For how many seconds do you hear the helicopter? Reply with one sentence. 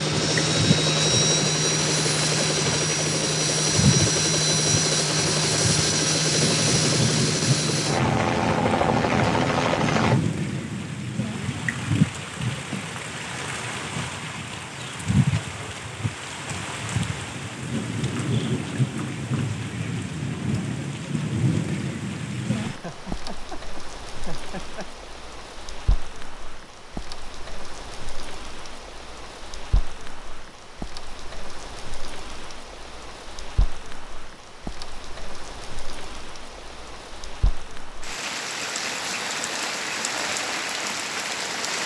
The helicopter can be heard for 10 seconds in total.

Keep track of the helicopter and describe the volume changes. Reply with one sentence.
The volume of the helicopter stays about the same.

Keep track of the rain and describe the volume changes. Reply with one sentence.
The volume of the rain goes down, then up.